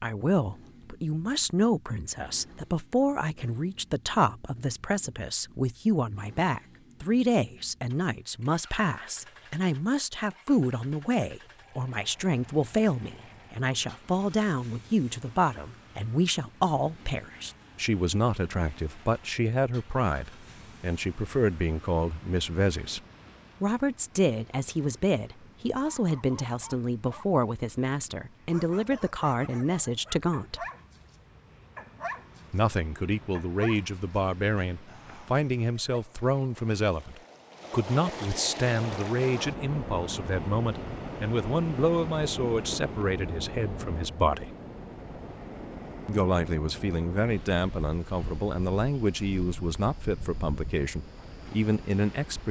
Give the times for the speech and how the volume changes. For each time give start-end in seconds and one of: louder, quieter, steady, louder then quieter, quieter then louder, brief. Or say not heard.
0.0-23.0 steady
23.6-30.6 steady
32.5-44.5 steady
46.0-52.4 steady.